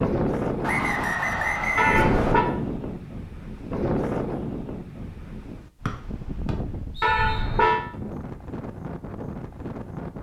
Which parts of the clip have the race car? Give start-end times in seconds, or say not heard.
not heard.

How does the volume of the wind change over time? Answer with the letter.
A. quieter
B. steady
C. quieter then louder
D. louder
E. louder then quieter
A.